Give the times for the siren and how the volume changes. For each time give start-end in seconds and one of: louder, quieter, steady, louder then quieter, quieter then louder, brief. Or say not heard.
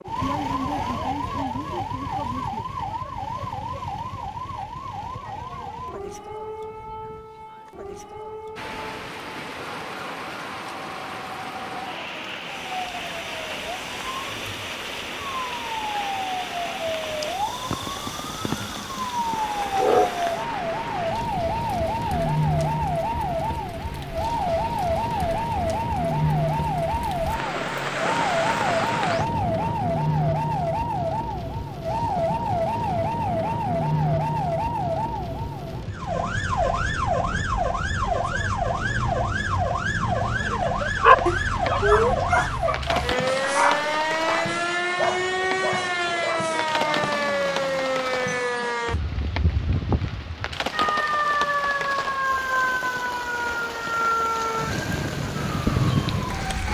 0.0-56.6 louder.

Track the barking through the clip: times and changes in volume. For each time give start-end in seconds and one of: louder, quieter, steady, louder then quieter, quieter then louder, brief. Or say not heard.
41.0-47.9 quieter.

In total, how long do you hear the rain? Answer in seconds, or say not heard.
48 s.